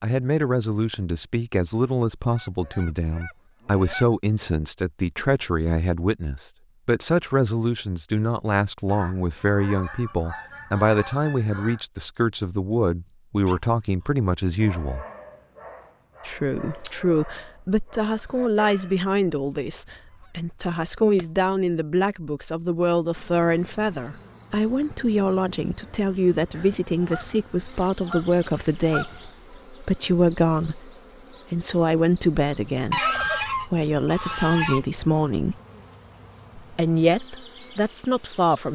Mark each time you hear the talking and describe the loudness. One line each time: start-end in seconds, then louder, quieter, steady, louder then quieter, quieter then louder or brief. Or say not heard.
0.0-15.1 steady
16.2-30.9 steady
31.5-35.5 quieter then louder
36.5-38.7 brief.